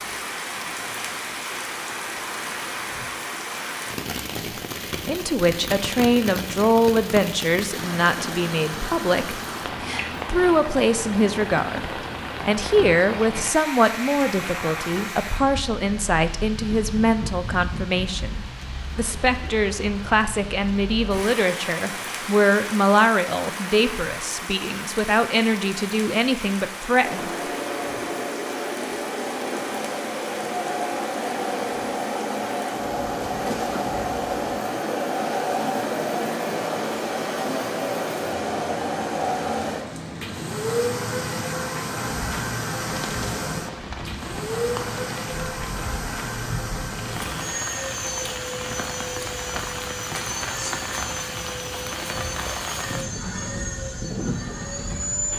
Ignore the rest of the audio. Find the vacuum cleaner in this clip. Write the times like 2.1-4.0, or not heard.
27.0-55.3.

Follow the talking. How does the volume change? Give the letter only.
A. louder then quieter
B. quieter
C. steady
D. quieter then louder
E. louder
C.